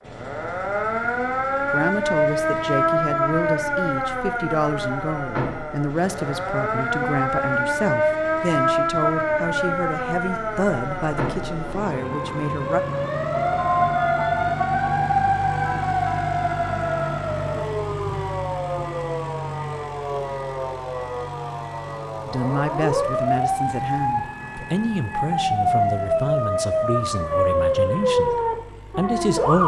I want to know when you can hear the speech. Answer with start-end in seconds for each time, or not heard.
1.7-12.8, 22.2-28.4, 28.9-29.6.